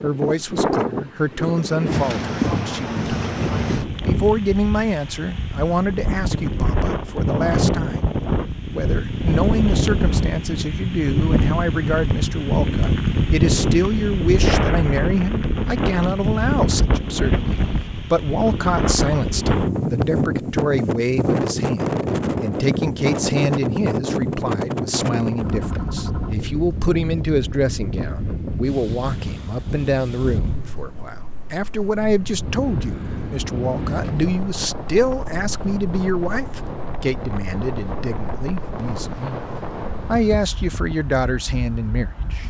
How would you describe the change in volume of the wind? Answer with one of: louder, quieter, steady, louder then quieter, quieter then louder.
quieter.